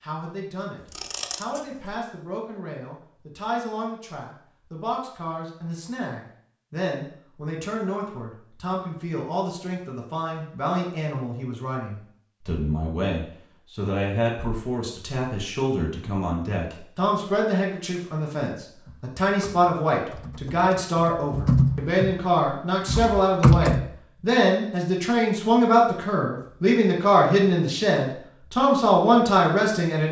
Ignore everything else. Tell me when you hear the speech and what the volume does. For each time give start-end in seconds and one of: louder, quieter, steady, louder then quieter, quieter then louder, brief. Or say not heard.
0.0-30.0 louder.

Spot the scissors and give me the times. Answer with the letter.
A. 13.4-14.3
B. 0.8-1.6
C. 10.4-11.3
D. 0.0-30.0
B.